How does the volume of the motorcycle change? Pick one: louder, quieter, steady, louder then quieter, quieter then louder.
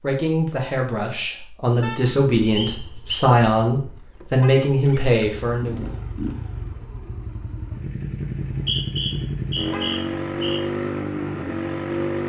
louder.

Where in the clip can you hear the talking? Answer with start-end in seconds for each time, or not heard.
0.0-5.9.